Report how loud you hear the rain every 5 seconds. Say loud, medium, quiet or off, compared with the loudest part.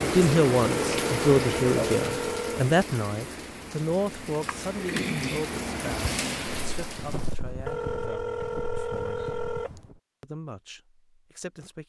loud, loud, off.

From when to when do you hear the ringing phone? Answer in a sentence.
The ringing phone can be heard from 0.6 to 2.6 s and from 7.5 to 9.9 s.